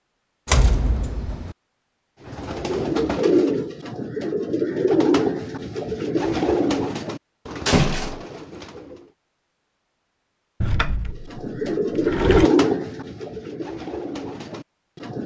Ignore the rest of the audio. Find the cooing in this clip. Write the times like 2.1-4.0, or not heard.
2.2-9.1, 11.3-15.2.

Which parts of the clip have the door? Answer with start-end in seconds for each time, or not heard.
0.5-1.6, 7.7-8.2, 10.6-12.5.